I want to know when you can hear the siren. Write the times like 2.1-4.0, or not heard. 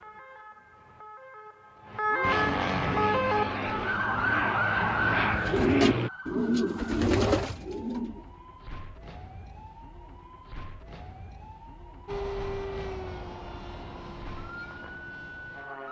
0.0-15.8.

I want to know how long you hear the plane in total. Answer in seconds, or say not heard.
8 s.